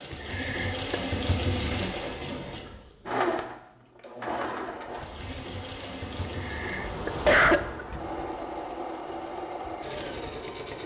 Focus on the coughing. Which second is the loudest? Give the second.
7 s.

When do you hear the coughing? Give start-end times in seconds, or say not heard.
0.1-1.0, 6.2-8.0.